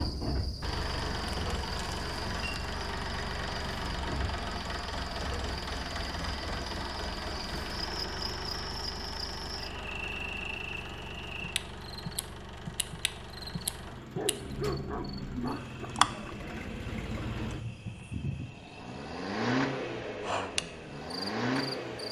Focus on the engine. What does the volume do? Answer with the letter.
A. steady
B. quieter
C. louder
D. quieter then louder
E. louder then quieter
D.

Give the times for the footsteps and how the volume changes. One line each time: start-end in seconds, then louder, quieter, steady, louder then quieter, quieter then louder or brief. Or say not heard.
not heard.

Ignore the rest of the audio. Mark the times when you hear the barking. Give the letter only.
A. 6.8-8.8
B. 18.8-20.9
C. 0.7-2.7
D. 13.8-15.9
D.